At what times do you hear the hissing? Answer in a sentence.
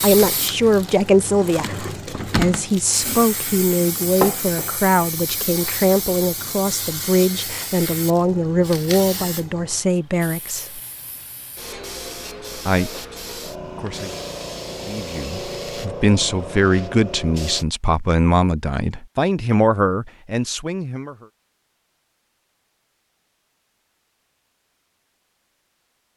The hissing can be heard from 0.0 to 17.6 s.